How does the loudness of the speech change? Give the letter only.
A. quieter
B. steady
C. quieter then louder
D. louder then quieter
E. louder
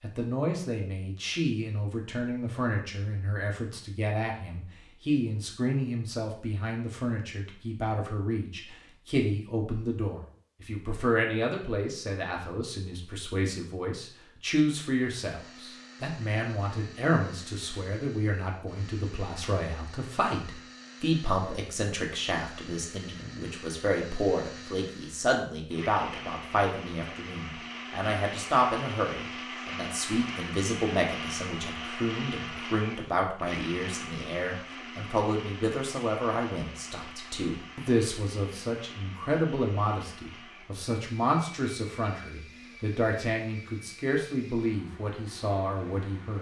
B.